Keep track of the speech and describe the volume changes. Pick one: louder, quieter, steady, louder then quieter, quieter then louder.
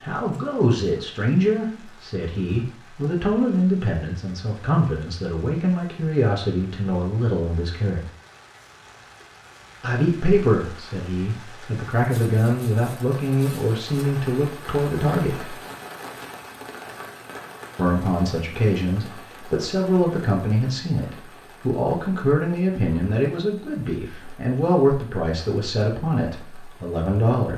steady.